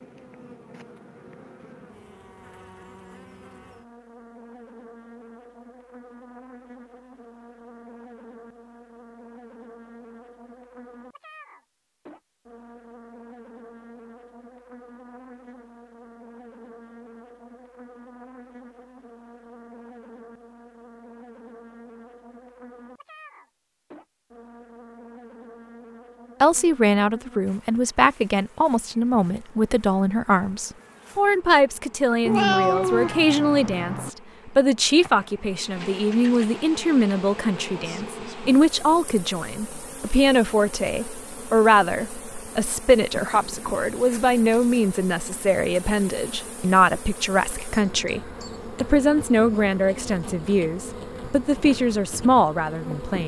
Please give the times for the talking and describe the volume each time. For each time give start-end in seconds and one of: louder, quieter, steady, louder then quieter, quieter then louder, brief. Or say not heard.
26.4-53.2 steady.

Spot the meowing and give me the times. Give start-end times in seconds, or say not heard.
32.2-34.1.